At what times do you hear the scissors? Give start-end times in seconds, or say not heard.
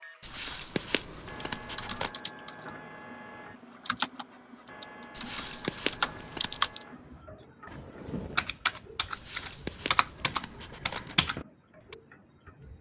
0.2-2.2, 5.1-6.7, 9.1-11.2.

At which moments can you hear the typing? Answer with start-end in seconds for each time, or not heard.
1.4-11.9.